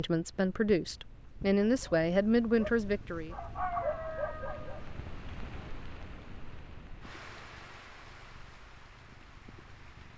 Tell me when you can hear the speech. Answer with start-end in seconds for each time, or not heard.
0.0-3.4.